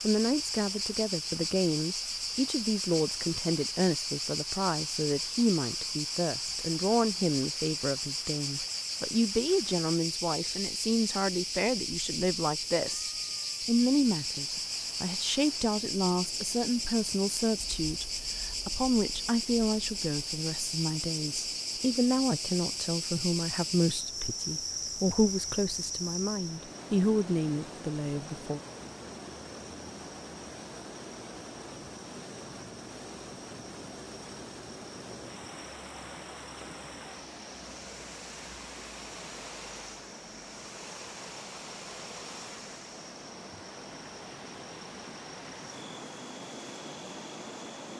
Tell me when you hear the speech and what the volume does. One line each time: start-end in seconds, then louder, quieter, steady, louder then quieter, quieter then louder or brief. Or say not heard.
0.0-28.6 steady.